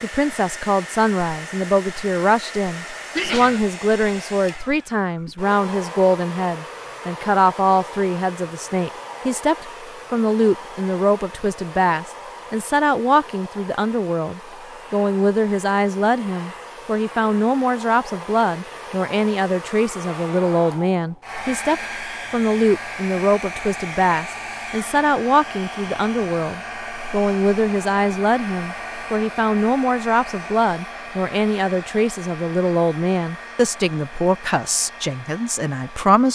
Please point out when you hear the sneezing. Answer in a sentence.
The sneezing can be heard from 3.1 to 4.2 s.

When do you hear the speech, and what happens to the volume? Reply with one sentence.
You can hear the speech from 0.0 to 36.2 s, at a steady volume.